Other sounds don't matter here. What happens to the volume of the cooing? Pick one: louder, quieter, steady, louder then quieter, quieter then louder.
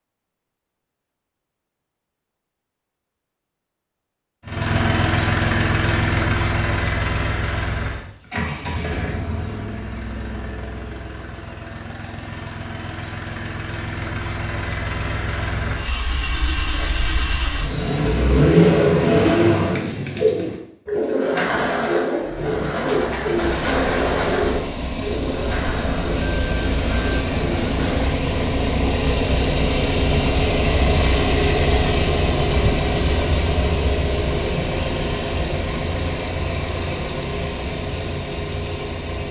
quieter.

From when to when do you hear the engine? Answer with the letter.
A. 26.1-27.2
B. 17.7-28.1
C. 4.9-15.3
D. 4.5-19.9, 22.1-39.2
D.